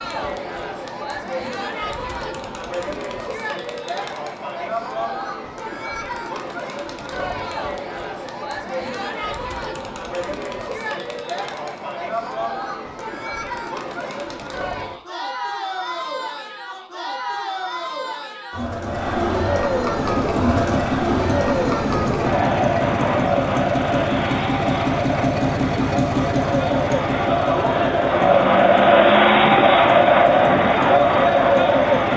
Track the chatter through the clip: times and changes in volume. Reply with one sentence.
The chatter can be heard from 0.0 to 32.1 s, getting louder.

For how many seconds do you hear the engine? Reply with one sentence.
You can hear the engine for 12 seconds altogether.